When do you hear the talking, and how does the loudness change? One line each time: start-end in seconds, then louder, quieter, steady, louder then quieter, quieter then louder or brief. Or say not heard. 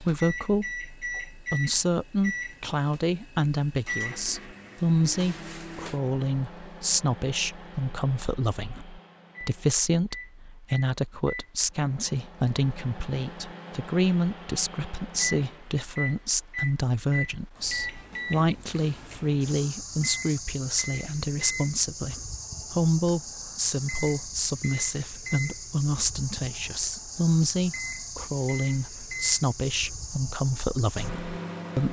0.0-31.8 steady.